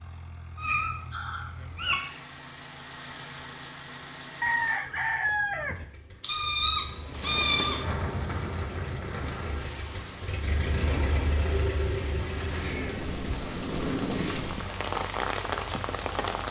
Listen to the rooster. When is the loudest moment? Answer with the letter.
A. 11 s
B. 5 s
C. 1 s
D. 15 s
B.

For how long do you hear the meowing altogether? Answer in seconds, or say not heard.
5 s.